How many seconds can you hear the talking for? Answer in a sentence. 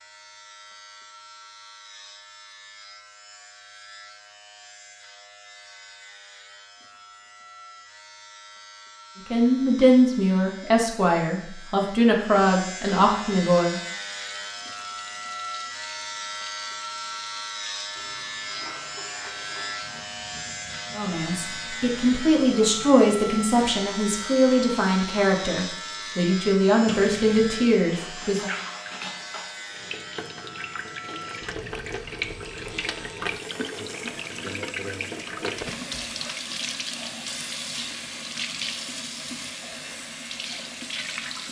You can hear the talking for 12 seconds altogether.